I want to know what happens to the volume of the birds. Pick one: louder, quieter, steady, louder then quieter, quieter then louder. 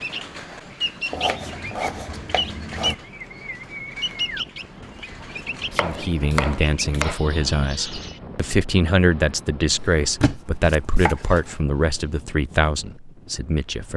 quieter.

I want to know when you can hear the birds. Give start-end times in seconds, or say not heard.
0.0-8.2.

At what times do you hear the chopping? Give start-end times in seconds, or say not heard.
1.1-3.0, 5.7-7.2, 9.7-11.6.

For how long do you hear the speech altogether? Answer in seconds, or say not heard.
8 s.